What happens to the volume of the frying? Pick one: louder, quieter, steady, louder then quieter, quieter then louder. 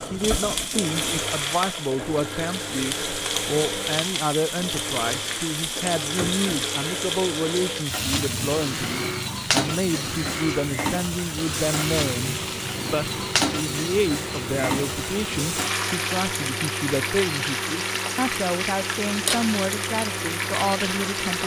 steady.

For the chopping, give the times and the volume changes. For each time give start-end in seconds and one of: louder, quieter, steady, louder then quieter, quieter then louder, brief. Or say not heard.
not heard.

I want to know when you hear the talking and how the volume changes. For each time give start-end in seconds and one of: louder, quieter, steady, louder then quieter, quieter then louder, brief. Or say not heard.
0.0-21.4 steady.